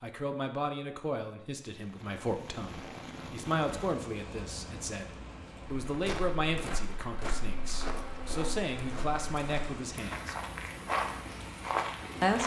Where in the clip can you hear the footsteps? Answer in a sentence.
You can hear the footsteps from 5.8 to 12.4 s.